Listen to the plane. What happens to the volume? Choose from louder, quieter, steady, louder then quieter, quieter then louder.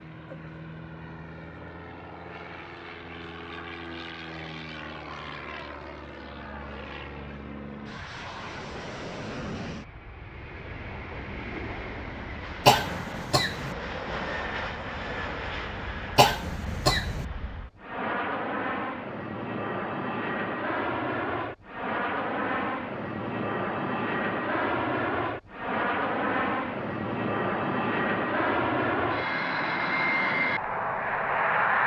louder.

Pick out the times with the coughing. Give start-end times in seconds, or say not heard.
12.7-13.8, 16.1-17.2.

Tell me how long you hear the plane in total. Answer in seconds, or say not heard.
32 s.